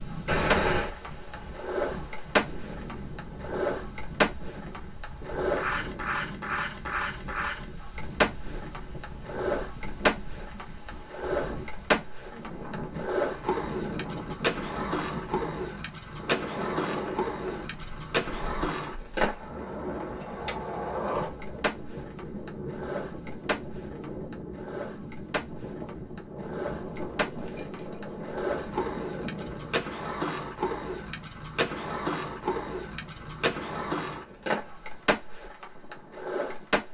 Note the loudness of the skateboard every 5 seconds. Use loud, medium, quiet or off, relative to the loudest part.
loud, loud, loud, loud, medium, medium, loud, loud.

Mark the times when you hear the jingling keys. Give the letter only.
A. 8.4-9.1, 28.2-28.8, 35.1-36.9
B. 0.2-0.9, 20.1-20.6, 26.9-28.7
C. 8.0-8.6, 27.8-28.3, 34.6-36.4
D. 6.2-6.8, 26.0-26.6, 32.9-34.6
B.